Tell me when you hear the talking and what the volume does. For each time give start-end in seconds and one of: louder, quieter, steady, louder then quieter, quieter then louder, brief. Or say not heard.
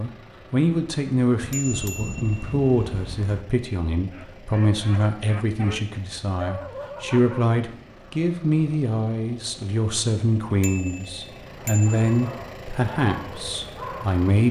0.0-14.4 steady.